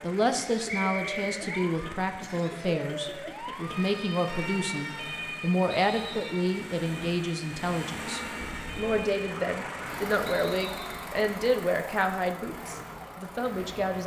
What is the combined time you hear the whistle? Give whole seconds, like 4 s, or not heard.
2 s.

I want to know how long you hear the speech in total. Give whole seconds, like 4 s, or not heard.
14 s.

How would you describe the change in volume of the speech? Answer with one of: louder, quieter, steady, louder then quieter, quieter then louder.
steady.